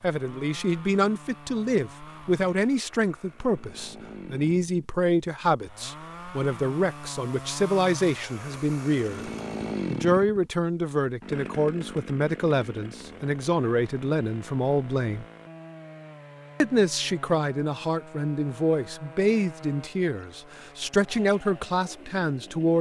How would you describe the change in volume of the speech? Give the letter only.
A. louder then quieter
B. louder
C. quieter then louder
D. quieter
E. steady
E.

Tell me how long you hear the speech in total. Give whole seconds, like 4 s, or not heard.
21 s.